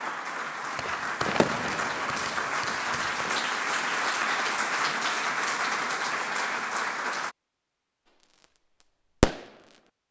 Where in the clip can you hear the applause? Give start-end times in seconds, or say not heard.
0.0-7.3.